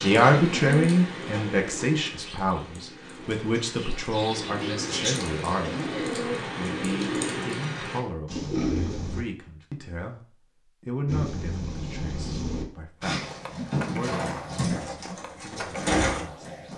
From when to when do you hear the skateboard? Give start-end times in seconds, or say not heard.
13.2-16.7.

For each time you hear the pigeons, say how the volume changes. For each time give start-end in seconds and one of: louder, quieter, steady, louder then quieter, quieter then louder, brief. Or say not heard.
0.0-9.2 quieter then louder
11.1-16.7 louder.